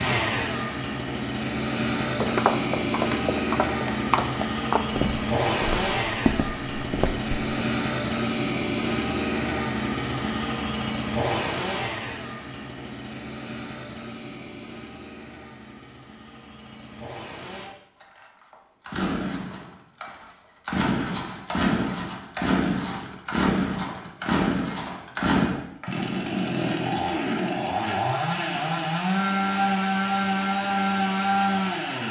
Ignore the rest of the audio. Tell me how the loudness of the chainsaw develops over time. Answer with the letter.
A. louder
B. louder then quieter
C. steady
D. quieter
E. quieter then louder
E.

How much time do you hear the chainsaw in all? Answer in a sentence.
The chainsaw can be heard for 32 seconds in total.